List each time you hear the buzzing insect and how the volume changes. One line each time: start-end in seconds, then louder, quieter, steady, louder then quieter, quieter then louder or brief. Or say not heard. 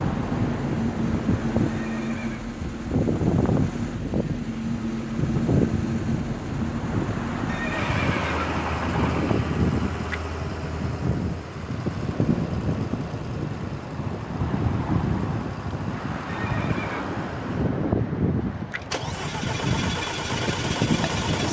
not heard.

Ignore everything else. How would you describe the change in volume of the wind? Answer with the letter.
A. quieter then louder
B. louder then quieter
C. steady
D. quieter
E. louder
C.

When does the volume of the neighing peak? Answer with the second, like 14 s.
8 s.